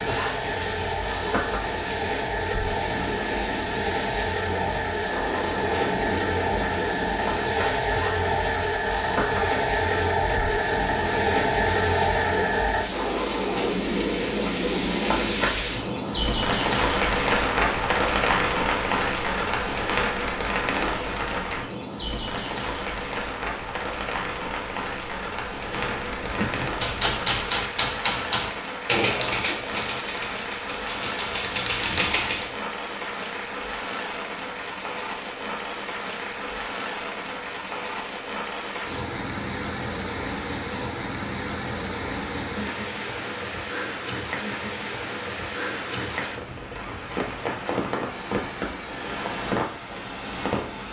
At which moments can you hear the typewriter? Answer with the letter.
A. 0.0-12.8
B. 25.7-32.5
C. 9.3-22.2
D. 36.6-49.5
B.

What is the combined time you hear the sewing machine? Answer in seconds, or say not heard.
13 s.